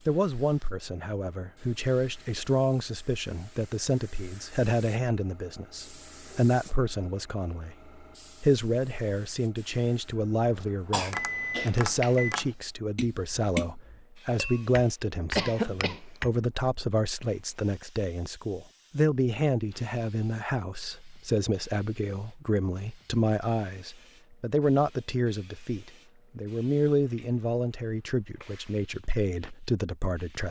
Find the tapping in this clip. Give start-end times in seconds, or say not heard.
11.0-16.4.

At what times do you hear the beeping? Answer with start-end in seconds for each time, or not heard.
11.1-12.3.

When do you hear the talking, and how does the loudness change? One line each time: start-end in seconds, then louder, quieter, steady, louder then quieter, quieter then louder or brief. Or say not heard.
0.1-30.4 steady.